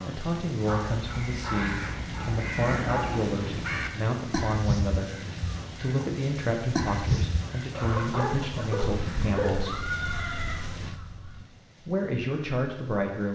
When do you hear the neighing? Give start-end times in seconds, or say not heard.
9.5-10.7.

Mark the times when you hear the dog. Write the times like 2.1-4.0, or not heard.
0.6-3.3, 7.7-9.6.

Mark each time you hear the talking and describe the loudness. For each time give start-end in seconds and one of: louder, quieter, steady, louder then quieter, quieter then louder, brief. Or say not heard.
0.1-9.8 steady
11.8-13.3 brief.